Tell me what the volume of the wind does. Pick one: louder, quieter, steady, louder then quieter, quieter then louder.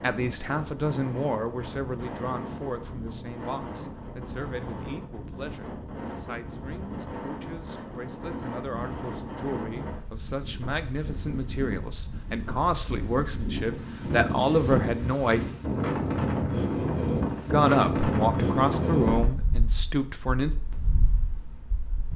louder.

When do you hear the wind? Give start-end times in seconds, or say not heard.
0.0-22.1.